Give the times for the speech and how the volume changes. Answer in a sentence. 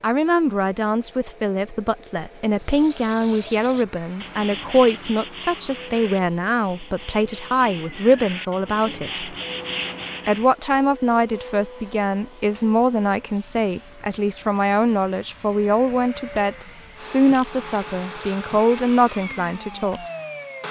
The speech can be heard from 0.0 to 9.3 s, at a steady volume; and from 10.2 to 20.0 s, at a steady volume.